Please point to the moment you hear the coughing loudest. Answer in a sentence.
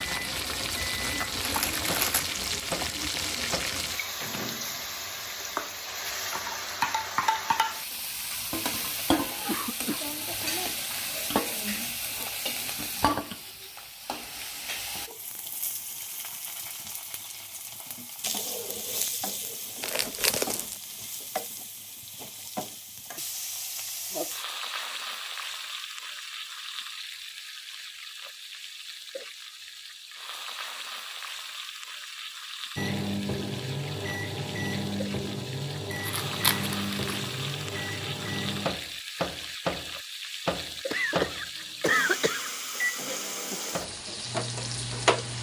The loudest moment of the coughing is at 42 seconds.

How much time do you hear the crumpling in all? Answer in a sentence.
The crumpling can be heard for 3 seconds in total.